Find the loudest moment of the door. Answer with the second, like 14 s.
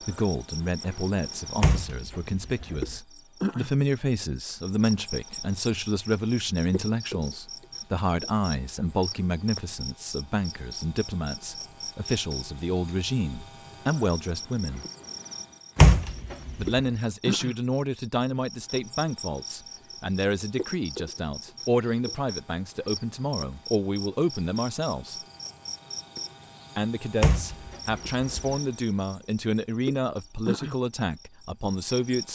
16 s.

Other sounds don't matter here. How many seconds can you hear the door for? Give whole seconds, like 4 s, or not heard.
4 s.